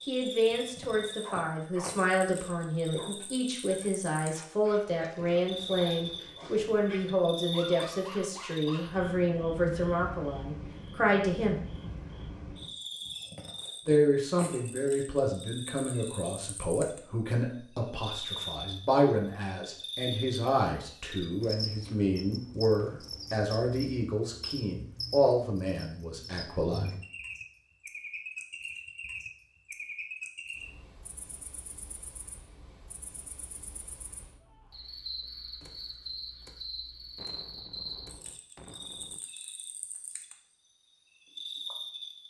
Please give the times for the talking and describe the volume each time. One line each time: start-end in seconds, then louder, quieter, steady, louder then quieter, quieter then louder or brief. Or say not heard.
0.1-11.6 steady
13.8-27.0 steady.